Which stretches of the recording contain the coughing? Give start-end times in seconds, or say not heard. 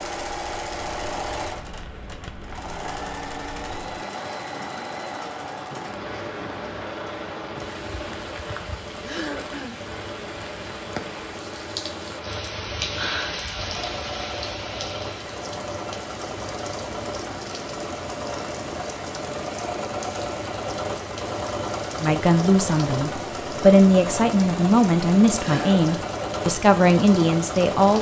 9.0-9.8, 25.4-26.1.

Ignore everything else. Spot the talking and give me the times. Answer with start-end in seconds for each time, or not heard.
22.0-27.9.